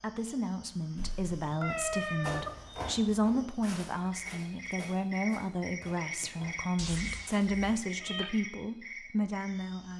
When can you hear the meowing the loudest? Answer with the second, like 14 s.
2 s.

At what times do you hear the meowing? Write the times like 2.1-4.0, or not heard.
1.6-2.5, 6.8-8.3.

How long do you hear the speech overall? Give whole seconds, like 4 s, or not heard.
10 s.